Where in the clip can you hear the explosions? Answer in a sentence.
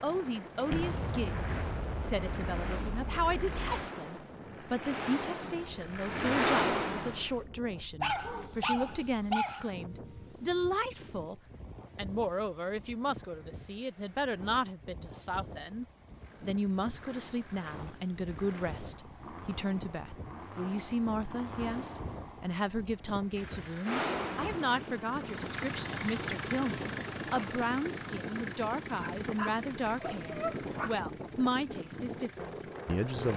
You can hear the explosions from 0.7 to 3.9 s.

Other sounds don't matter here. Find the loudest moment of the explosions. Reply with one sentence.
The volume of the explosions peaks at 1 second.